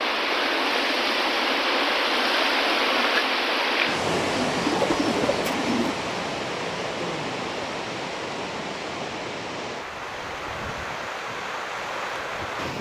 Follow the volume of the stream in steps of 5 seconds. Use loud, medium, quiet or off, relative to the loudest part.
loud, medium, medium.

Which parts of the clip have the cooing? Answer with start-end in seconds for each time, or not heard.
4.2-6.0.